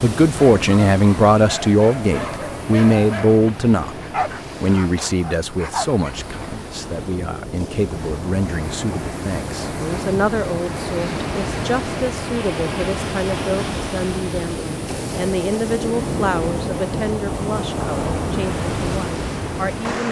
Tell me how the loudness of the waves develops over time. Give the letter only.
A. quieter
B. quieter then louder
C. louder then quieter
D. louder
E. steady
D.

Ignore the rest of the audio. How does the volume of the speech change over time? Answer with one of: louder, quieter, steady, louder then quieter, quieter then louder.
quieter.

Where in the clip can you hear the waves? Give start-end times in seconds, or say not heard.
0.0-20.0.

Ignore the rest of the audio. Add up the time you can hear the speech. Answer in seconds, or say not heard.
19 s.